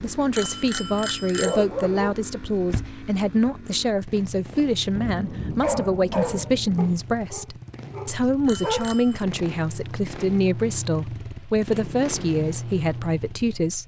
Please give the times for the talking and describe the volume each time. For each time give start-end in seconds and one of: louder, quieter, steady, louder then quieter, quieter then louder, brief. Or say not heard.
0.0-13.8 steady.